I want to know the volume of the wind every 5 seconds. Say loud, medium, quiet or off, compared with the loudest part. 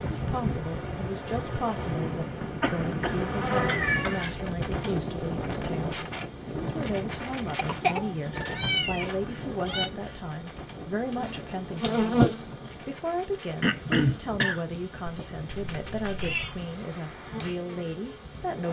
loud, loud, medium, quiet.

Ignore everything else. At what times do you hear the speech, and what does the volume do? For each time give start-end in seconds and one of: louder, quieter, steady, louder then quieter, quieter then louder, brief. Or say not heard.
0.0-18.6 steady.